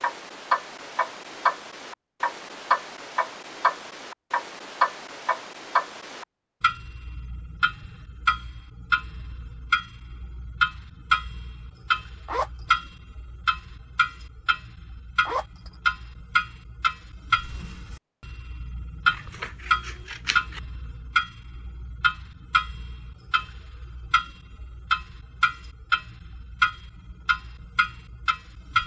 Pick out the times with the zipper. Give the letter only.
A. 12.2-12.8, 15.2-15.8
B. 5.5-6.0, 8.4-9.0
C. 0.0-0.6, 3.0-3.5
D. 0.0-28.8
A.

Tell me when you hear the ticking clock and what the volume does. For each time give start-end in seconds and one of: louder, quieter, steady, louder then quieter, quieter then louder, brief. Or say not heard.
0.0-28.8 steady.